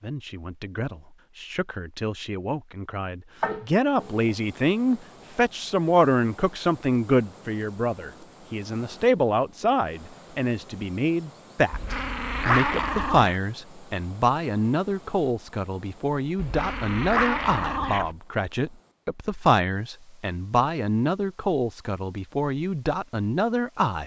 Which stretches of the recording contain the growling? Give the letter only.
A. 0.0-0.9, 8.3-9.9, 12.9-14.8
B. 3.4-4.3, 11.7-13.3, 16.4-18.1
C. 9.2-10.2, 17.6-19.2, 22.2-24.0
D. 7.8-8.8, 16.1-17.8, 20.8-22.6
B.